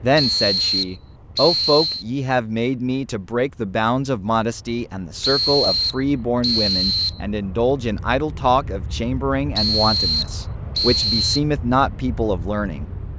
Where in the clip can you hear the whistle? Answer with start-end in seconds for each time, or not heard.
0.1-2.0, 5.2-7.2, 9.6-11.4.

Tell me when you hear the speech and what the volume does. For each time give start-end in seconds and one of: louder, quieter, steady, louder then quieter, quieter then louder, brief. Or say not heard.
0.0-12.9 steady.